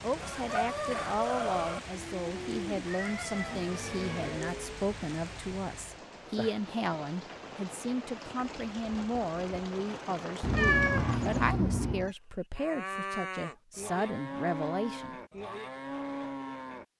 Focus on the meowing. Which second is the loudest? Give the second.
11 s.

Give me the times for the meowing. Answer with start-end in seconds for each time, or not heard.
2.9-4.3, 10.4-12.1.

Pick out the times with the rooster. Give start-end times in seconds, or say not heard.
0.2-1.8.